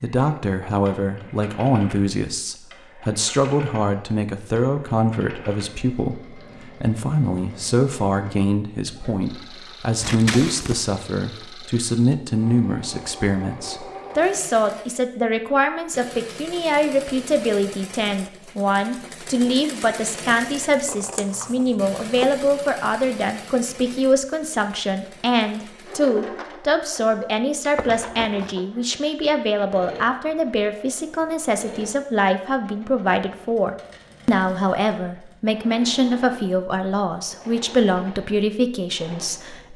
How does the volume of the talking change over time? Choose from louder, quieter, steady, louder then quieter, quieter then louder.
steady.